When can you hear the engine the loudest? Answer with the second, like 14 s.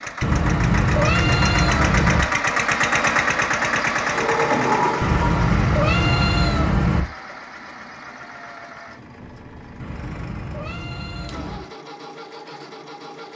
3 s.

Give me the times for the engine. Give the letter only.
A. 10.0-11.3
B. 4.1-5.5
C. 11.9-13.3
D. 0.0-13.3
D.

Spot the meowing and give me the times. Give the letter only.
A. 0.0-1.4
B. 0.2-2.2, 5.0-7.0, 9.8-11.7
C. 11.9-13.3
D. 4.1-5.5
B.